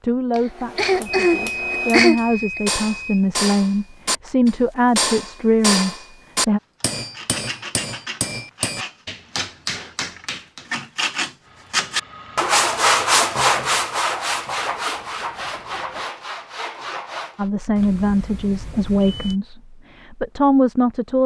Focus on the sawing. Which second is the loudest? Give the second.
13 s.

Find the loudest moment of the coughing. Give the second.
2 s.